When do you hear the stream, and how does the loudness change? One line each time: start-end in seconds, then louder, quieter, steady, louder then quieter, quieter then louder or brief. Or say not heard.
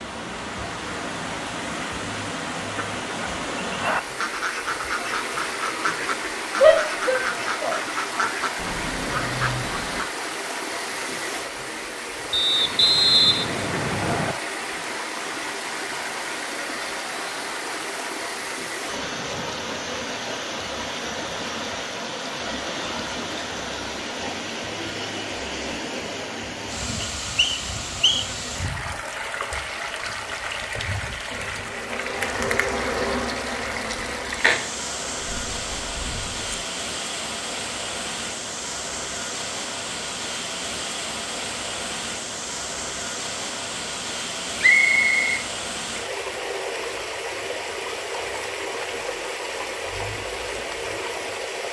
0.0-51.6 steady.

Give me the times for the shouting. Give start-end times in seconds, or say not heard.
6.6-8.3.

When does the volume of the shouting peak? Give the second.
7 s.